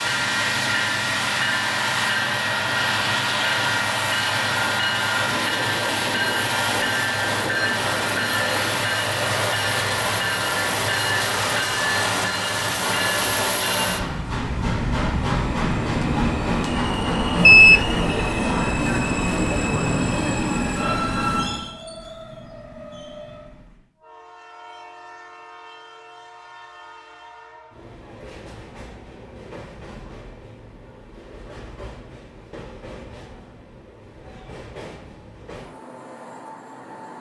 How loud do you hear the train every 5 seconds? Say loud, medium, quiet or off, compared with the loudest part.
loud, loud, loud, loud, medium, quiet, quiet, quiet.